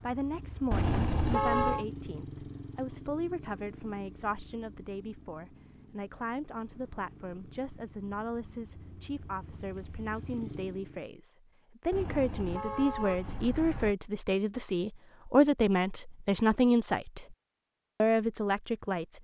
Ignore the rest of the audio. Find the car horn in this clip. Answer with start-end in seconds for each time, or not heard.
0.7-1.9, 11.9-13.9.